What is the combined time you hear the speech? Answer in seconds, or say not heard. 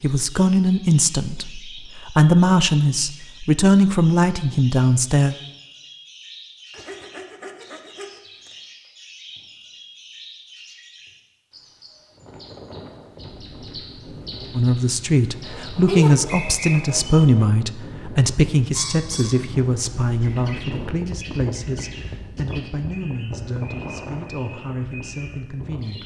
17 s.